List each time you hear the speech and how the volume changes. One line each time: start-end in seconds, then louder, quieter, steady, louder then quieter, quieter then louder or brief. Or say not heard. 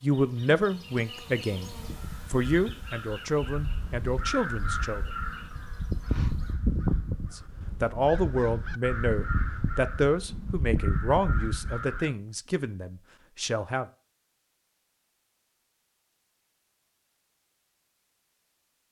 0.0-1.7 brief
2.3-5.0 brief
7.3-13.8 quieter.